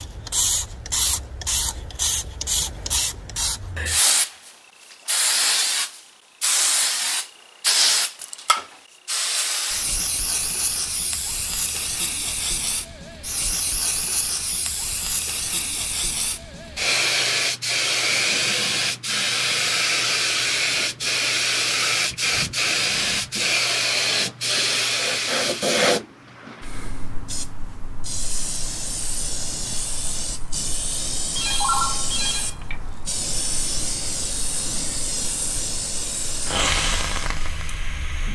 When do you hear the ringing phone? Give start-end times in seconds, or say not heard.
31.4-32.8.